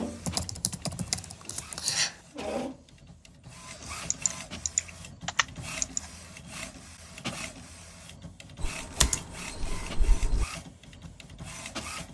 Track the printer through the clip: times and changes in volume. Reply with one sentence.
You can hear the printer from 0.0 to 12.0 s, at a steady volume.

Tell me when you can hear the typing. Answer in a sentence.
You can hear the typing from 0.2 to 2.1 s, from 4.1 to 6.1 s and from 8.6 to 10.4 s.